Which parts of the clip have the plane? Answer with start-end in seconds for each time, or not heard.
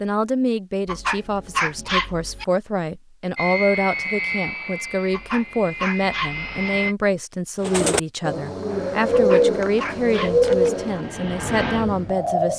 3.4-7.0, 8.7-12.5.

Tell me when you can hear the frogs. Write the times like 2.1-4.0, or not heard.
not heard.